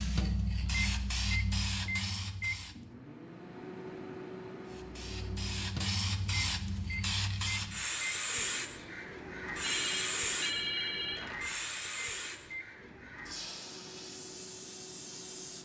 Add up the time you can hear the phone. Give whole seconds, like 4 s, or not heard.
2 s.